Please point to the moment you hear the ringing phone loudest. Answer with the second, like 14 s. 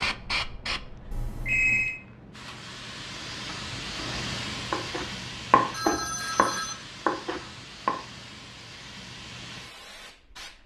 2 s.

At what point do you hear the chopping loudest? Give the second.
6 s.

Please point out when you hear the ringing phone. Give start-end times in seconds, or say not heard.
1.1-2.0, 5.7-6.8.